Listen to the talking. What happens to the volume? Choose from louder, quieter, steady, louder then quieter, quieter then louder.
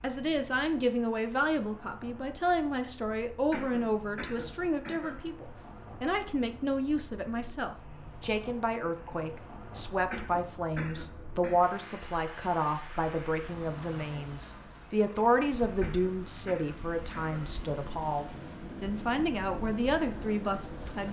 steady.